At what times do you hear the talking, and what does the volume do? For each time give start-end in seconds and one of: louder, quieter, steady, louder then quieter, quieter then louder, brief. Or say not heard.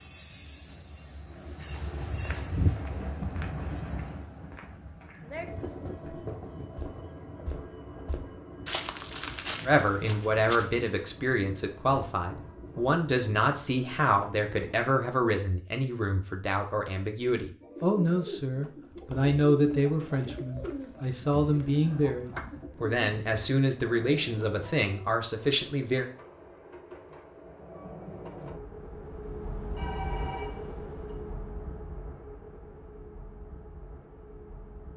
9.7-26.1 steady.